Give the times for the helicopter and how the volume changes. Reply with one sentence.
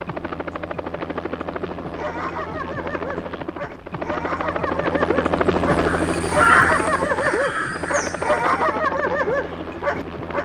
The helicopter can be heard from 0.0 to 10.3 s, getting louder then quieter.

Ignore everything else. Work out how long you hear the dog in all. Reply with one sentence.
You can hear the dog for 8 seconds altogether.